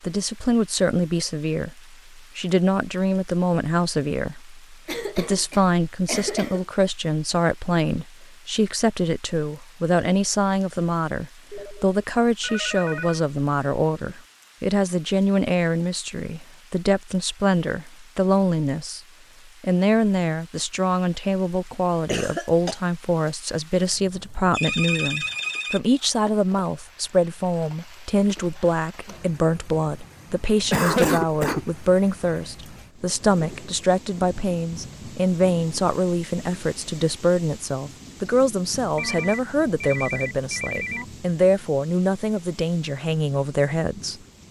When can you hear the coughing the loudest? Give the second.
31 s.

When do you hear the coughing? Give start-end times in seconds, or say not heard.
4.8-6.7, 22.1-22.8, 30.7-31.6.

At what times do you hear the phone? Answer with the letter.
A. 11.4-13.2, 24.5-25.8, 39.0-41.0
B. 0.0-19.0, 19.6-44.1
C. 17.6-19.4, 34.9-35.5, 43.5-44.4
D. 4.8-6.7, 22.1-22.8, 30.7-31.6
A.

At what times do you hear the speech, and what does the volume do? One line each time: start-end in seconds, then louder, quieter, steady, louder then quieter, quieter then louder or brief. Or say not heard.
0.0-19.0 steady
19.6-44.1 steady.